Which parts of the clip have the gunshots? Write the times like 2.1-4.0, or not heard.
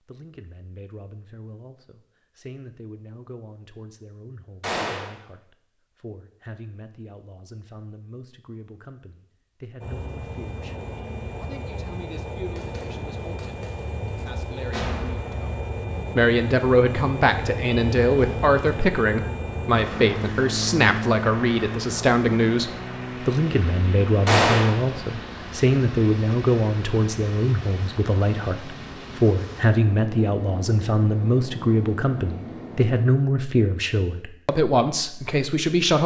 4.6-5.2, 12.6-15.5, 24.2-24.8.